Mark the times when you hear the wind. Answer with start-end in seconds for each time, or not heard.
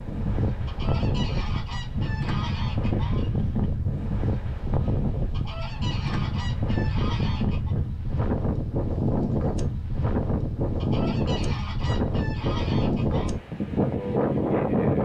0.0-14.9.